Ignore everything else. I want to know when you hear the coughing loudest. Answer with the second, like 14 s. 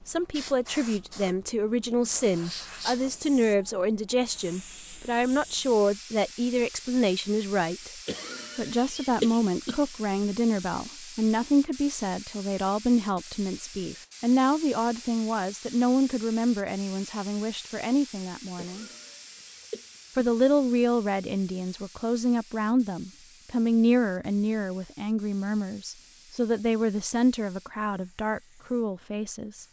9 s.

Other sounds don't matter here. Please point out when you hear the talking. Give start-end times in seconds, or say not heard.
0.1-7.9, 8.6-18.9, 20.1-29.6.